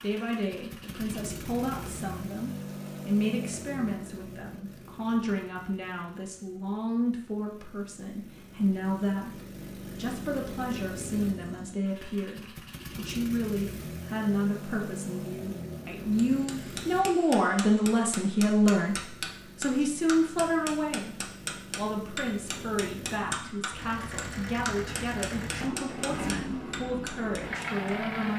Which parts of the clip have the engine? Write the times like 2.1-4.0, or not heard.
0.0-17.1, 18.9-28.3.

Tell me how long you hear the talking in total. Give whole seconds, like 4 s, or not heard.
28 s.